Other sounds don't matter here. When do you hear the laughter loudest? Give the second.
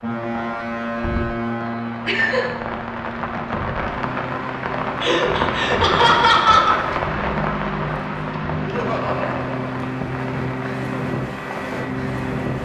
6 s.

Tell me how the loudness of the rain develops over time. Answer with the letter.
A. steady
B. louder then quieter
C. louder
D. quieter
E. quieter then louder
B.